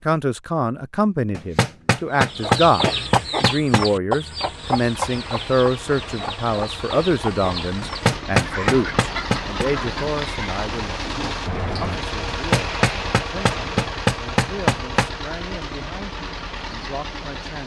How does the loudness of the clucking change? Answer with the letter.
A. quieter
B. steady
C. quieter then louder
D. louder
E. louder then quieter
A.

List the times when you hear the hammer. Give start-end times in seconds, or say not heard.
1.3-3.9, 7.8-9.7, 12.3-15.1.